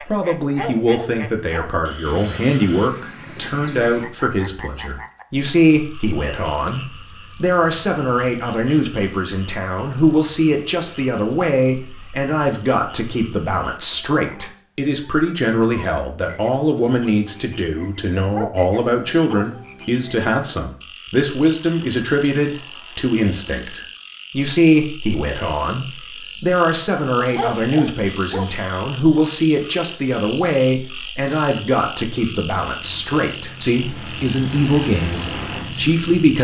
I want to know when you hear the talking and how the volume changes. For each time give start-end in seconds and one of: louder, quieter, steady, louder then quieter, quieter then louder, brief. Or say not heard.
0.1-36.3 steady.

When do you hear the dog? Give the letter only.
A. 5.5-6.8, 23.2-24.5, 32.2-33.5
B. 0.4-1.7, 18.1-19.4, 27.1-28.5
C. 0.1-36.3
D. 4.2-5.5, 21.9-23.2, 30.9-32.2
B.